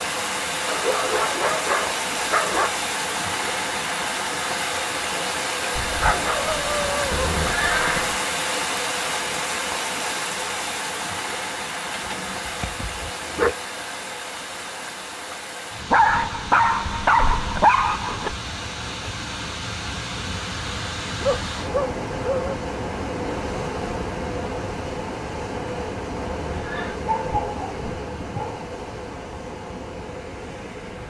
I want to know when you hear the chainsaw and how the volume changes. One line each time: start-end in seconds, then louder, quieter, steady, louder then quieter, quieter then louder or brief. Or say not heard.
not heard.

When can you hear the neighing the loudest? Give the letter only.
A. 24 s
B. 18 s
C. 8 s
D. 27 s
C.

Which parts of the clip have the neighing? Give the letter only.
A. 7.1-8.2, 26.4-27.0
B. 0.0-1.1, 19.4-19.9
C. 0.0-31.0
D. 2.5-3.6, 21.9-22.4
A.